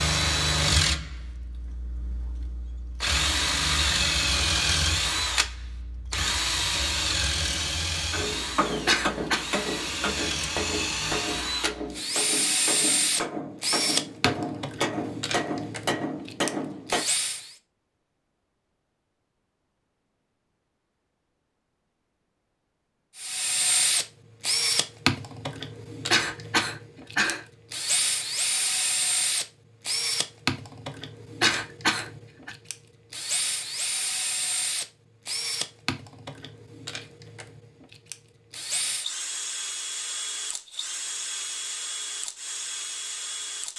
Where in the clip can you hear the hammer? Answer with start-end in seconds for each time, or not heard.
8.1-17.1.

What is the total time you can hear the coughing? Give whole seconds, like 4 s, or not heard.
3 s.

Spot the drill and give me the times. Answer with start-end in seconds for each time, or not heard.
0.0-17.6, 23.1-43.7.